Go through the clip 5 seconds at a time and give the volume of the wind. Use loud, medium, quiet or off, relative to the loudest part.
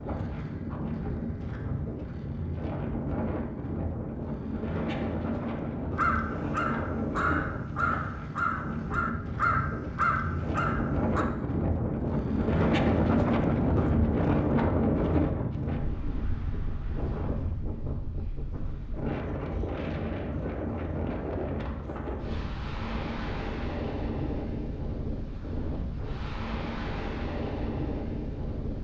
medium, medium, loud, medium, medium, medium.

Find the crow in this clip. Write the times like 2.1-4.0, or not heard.
6.0-11.2.